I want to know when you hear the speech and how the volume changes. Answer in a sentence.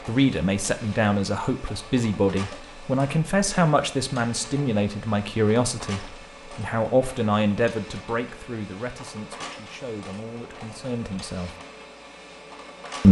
You can hear the speech from 0.1 to 11.6 s, getting quieter.